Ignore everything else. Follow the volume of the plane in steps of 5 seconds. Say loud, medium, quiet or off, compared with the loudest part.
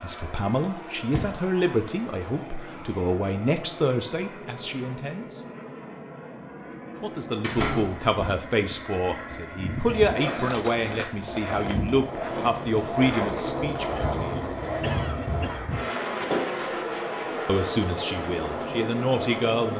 medium, medium, loud, loud.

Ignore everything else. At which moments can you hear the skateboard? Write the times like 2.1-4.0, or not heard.
9.8-19.7.